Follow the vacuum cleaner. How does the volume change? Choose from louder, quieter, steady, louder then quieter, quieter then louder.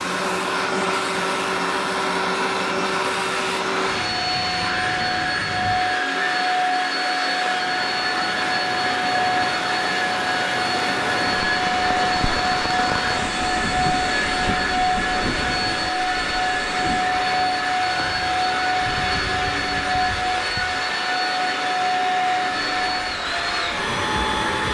steady.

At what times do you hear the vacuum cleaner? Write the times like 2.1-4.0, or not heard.
0.0-24.7.